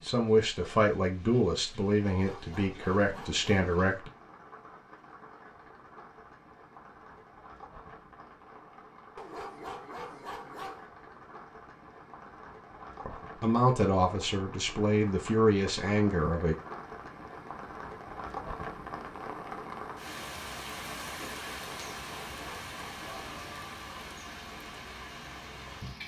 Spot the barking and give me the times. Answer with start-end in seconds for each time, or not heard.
2.1-3.5, 9.2-10.8, 21.7-23.4.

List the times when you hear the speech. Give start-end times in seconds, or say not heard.
0.0-4.1, 13.1-16.6.